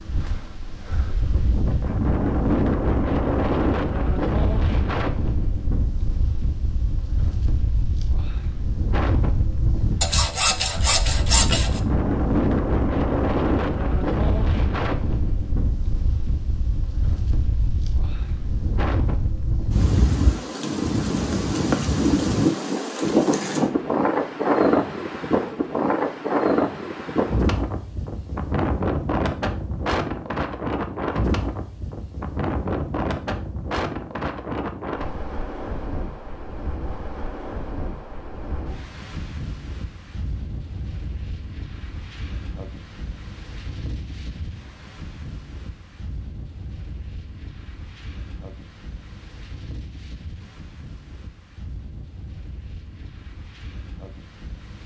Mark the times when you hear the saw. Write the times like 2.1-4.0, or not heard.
10.0-11.8.